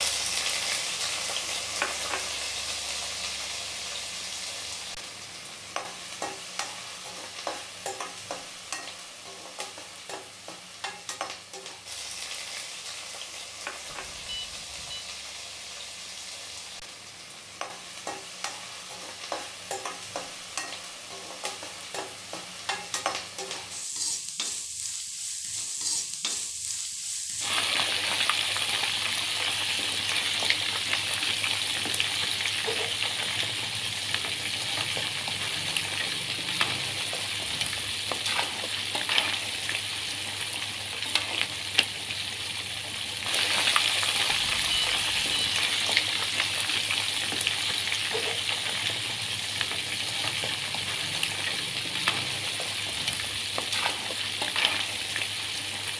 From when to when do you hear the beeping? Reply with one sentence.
The beeping can be heard from 13.8 to 15.1 s and from 44.3 to 45.6 s.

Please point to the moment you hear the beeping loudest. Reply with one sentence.
The loudest moment of the beeping is at 45 seconds.